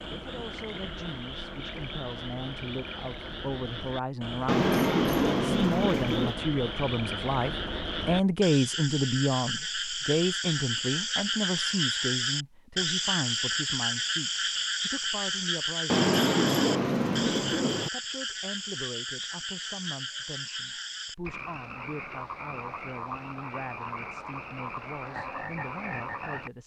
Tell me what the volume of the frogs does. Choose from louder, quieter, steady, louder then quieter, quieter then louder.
louder then quieter.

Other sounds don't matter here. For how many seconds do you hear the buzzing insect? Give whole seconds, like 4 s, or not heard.
not heard.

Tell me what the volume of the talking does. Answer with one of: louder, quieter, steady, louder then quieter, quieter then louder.
louder then quieter.